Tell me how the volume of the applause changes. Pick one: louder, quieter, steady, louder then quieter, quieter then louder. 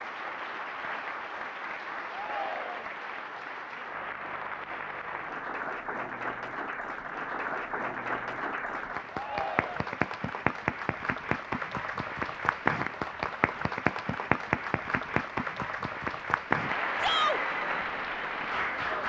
louder.